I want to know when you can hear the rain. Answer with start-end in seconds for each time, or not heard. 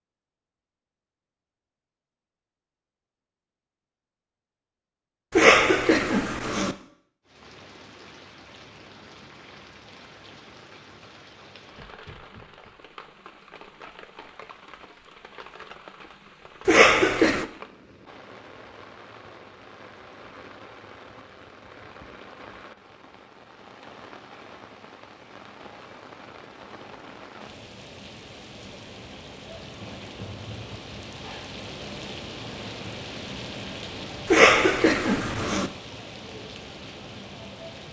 7.2-37.8.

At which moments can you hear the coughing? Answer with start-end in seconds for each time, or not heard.
5.3-6.8, 16.6-17.4, 34.3-35.7.